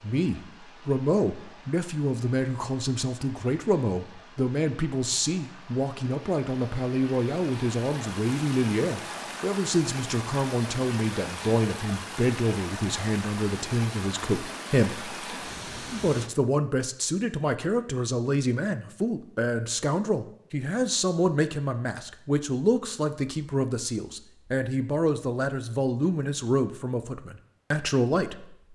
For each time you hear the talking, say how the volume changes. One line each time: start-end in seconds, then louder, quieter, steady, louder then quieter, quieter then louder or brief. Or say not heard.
0.0-28.7 steady.